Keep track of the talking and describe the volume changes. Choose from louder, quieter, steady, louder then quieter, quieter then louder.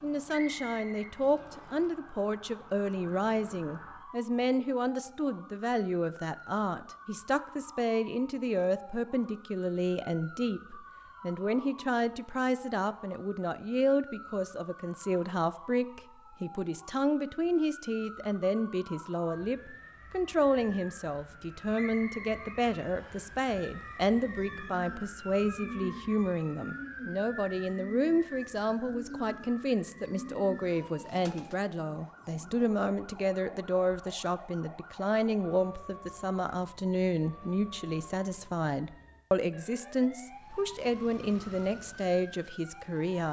steady.